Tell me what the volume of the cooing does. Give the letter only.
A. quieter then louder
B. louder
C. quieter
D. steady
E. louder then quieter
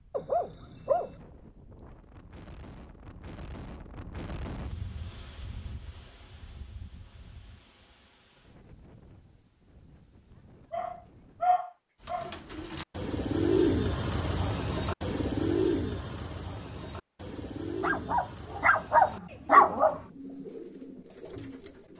C.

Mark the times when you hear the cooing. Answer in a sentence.
The cooing can be heard from 12.0 to 21.9 s.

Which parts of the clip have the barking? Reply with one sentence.
You can hear the barking from 0.1 to 1.1 s, from 10.7 to 12.3 s and from 17.8 to 20.0 s.